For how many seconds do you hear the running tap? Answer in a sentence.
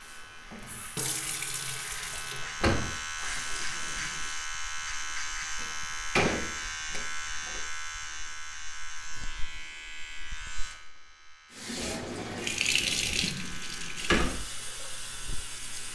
You can hear the running tap for 9 seconds altogether.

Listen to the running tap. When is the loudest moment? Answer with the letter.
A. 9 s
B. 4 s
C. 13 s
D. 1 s
C.